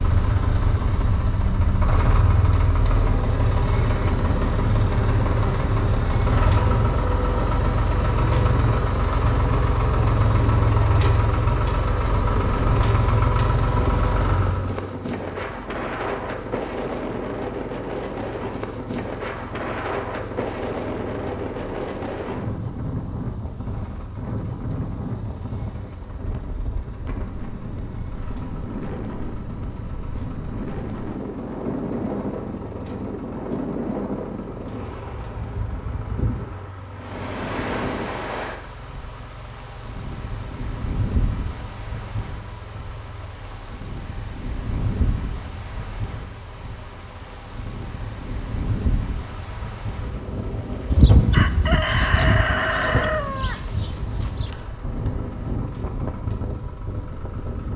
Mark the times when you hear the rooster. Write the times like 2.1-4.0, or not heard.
50.9-54.5.